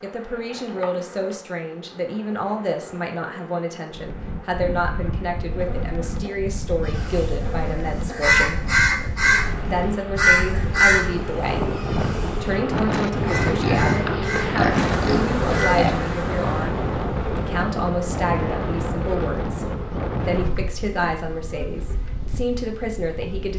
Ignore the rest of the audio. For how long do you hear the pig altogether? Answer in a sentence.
The pig can be heard for 3 seconds in total.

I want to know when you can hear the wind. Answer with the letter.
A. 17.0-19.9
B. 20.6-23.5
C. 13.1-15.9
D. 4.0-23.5
D.